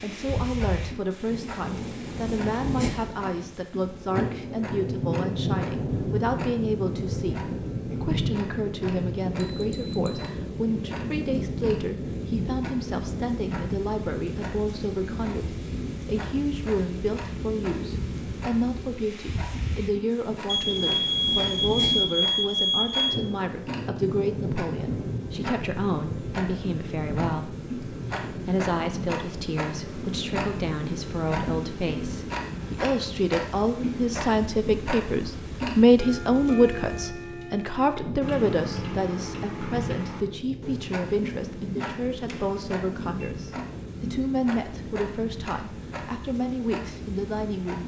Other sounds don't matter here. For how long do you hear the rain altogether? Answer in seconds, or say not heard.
48 s.